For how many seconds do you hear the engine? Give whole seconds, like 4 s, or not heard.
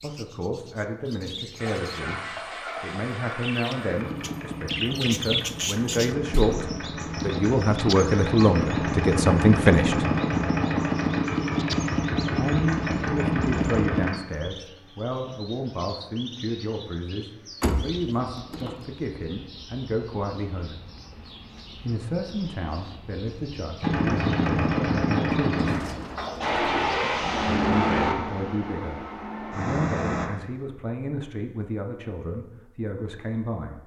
19 s.